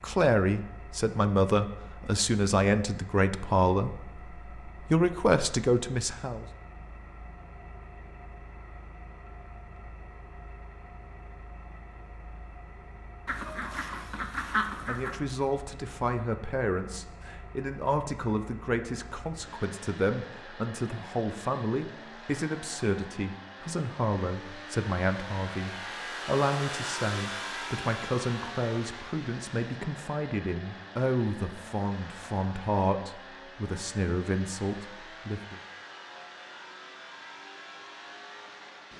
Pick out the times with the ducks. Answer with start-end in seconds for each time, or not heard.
13.2-15.2.